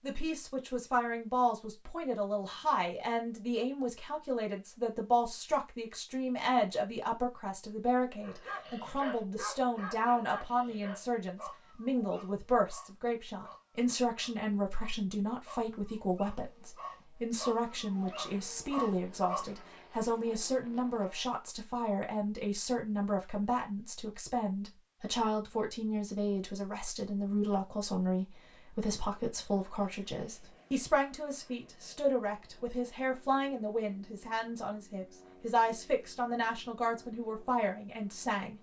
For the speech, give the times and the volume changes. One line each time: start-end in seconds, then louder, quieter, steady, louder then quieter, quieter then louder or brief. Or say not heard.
0.0-38.5 steady.